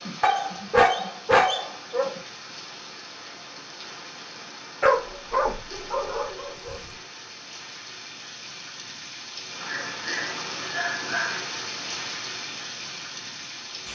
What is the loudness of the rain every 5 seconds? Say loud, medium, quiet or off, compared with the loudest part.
medium, medium, loud.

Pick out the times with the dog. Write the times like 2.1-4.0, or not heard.
0.2-2.2, 4.8-6.8, 9.6-11.5.